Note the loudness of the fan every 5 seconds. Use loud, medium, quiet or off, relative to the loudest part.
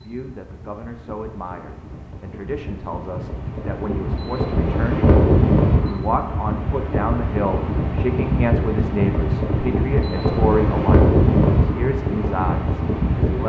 medium, loud, loud.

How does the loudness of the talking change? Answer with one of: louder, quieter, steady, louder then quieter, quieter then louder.
louder.